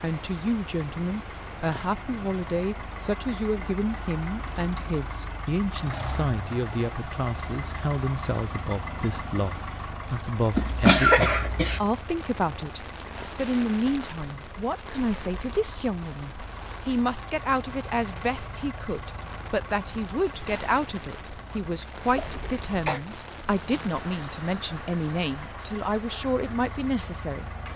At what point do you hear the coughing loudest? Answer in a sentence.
The loudest moment of the coughing is at 11 seconds.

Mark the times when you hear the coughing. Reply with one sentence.
The coughing can be heard from 10.5 to 11.8 s and from 22.1 to 23.0 s.